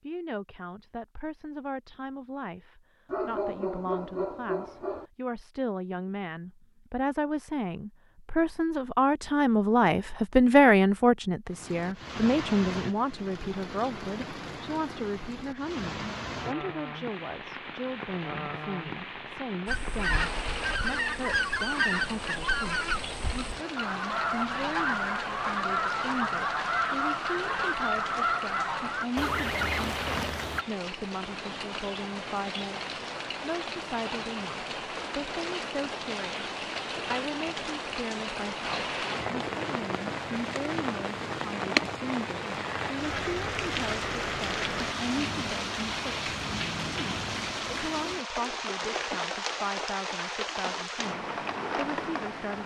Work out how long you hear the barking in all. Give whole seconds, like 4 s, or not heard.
2 s.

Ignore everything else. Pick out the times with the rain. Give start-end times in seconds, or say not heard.
11.4-52.6.